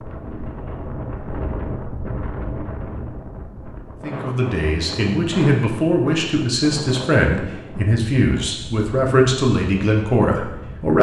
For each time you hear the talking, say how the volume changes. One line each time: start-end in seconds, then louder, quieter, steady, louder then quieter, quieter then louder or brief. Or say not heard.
4.0-10.9 steady.